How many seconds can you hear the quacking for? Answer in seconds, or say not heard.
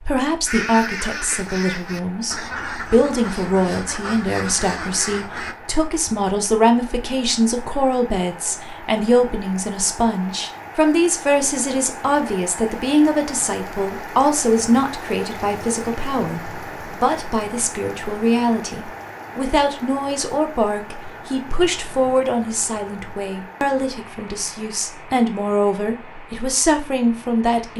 5 s.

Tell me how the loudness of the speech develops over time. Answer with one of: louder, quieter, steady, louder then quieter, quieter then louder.
steady.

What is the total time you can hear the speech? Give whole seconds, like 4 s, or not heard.
28 s.